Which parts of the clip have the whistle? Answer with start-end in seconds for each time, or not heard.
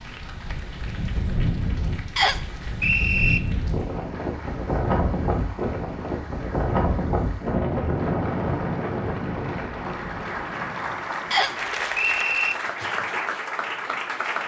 2.1-3.4, 11.3-12.6.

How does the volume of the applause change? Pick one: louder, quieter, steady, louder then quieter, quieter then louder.
louder.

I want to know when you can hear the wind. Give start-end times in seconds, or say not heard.
0.0-11.0.